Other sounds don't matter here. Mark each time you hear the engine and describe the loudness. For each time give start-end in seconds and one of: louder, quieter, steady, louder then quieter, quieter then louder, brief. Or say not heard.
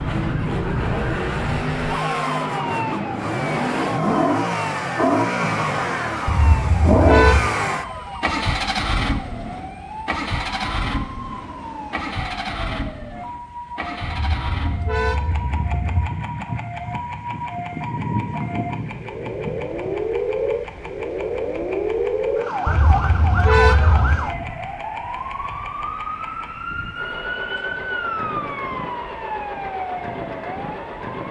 0.0-31.2 quieter.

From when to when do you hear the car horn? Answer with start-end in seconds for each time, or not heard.
6.2-7.5, 14.1-16.1, 22.6-24.2.